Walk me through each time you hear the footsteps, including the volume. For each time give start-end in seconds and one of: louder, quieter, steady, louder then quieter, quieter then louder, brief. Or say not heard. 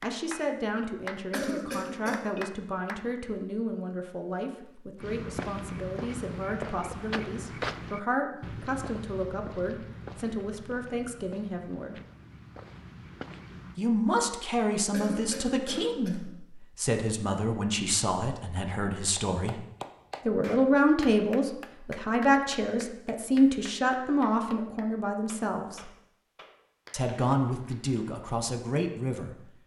5.0-13.8 quieter.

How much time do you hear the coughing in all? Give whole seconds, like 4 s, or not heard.
2 s.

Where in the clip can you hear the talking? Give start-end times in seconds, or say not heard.
0.0-11.9, 13.8-19.6, 20.2-25.9, 26.9-29.4.